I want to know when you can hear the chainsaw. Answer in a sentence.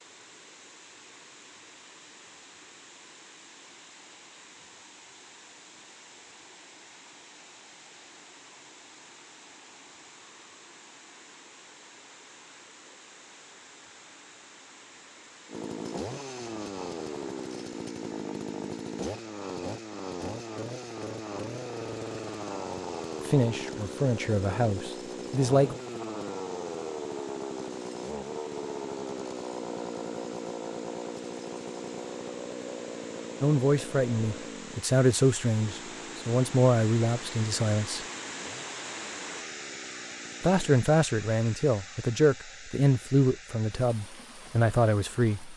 You can hear the chainsaw from 15.4 to 40.8 s.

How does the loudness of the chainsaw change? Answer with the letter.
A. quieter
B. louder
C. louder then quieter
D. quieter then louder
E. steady
A.